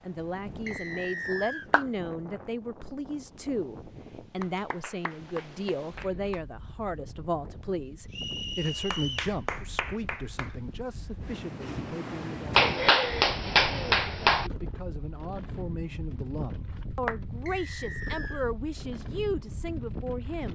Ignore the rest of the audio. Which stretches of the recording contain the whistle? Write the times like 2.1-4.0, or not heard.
0.7-1.7, 8.1-9.3, 17.4-18.4.